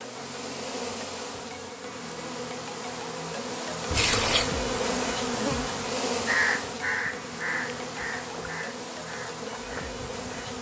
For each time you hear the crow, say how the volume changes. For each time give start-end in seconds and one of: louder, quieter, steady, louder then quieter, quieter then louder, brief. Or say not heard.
6.2-10.5 quieter.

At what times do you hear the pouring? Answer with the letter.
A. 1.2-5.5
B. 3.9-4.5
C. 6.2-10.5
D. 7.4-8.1
B.